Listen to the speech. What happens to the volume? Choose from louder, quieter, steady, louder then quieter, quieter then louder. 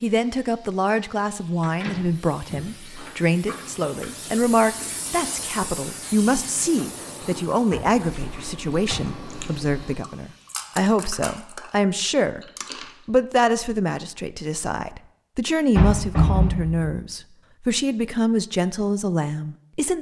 steady.